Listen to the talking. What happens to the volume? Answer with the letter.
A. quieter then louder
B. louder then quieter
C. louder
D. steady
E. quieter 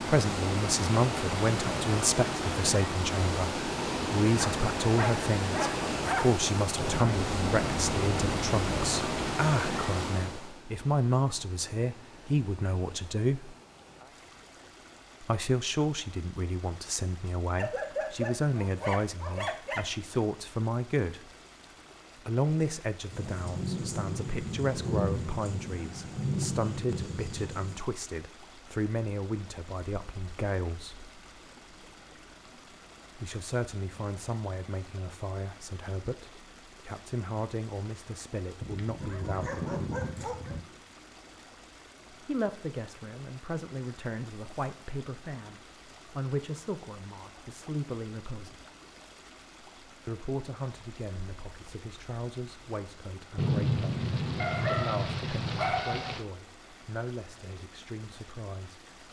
E.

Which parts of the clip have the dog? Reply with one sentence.
You can hear the dog from 4.3 to 6.2 s, from 17.6 to 19.9 s, from 38.6 to 40.6 s and from 54.4 to 56.2 s.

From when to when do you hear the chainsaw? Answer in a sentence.
The chainsaw can't be heard in this clip.